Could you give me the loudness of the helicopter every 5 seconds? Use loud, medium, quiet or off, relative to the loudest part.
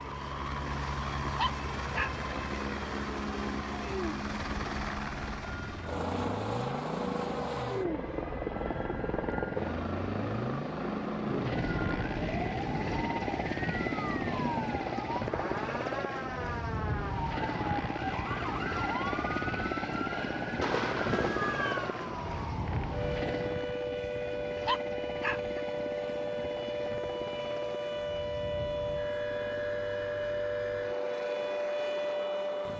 loud, loud, loud, loud, loud, medium, medium.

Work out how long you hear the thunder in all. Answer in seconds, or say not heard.
5 s.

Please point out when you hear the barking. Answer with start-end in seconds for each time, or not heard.
1.4-2.1, 24.6-25.6.